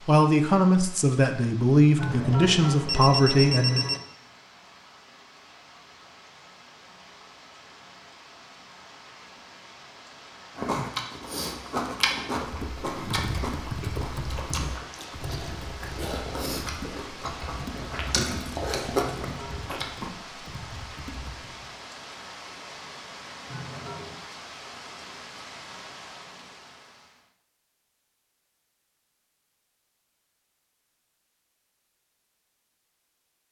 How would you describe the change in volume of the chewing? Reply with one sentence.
The loudness of the chewing goes down, then up.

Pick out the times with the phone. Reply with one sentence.
The phone can be heard from 1.9 to 4.0 s, from 19.0 to 19.9 s and from 23.5 to 24.2 s.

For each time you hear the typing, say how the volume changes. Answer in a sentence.
You can hear the typing from 12.4 to 21.7 s, getting quieter.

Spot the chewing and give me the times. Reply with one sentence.
The chewing can be heard from 10.6 to 20.1 s.